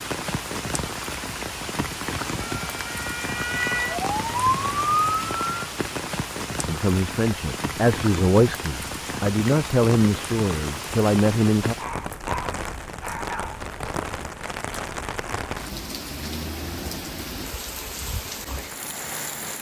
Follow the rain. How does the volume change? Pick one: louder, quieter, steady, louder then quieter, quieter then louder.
steady.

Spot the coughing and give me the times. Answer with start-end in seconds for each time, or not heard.
not heard.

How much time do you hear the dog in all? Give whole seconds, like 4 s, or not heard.
2 s.